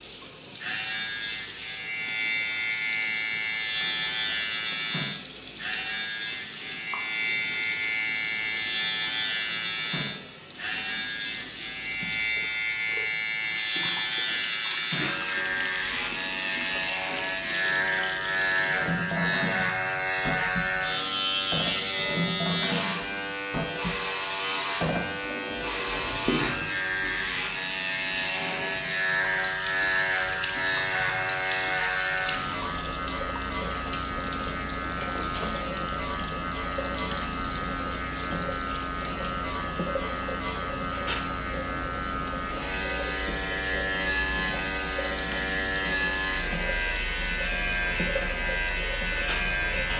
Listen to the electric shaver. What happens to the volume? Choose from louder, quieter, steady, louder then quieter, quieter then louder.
steady.